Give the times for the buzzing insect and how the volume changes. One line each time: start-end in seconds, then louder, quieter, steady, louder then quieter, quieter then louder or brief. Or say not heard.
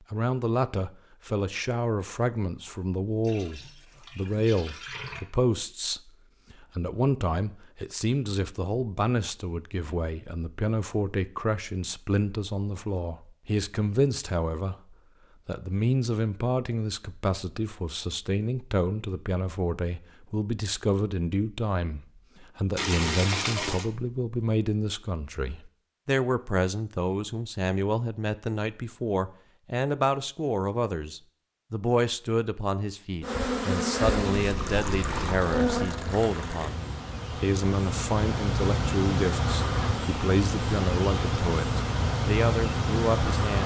33.2-43.6 steady.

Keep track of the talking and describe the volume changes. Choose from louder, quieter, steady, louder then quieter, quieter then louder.
steady.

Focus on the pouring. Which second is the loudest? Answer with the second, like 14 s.
23 s.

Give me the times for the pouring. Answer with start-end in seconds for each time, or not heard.
3.2-5.2, 22.8-23.9, 34.5-36.7.